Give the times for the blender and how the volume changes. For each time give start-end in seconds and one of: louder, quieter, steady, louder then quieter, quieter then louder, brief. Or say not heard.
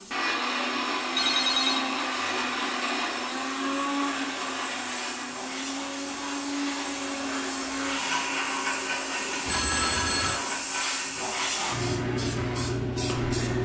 0.0-13.6 quieter.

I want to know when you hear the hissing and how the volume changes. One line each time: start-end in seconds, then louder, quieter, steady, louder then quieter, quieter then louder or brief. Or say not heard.
0.0-13.6 louder.